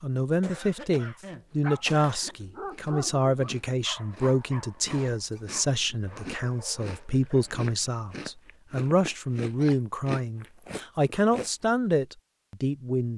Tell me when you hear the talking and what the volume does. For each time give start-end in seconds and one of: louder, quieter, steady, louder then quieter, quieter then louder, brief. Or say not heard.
0.0-13.1 steady.